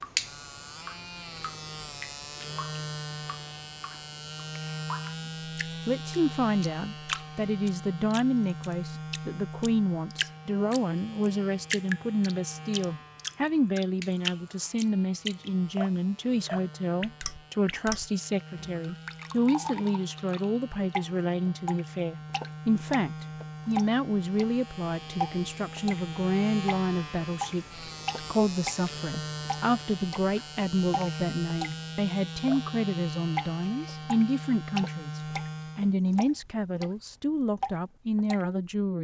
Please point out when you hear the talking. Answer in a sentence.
The talking can be heard from 5.8 to 38.9 s.